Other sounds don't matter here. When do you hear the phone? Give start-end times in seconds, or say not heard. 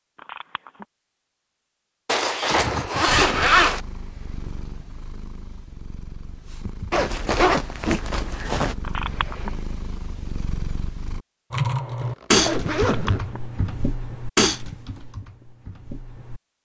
0.1-0.8, 8.8-9.5, 12.8-13.4.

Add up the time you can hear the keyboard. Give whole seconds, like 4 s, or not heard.
5 s.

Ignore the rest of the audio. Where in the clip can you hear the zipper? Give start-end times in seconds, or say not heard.
2.0-3.8, 6.9-8.8, 12.0-13.2.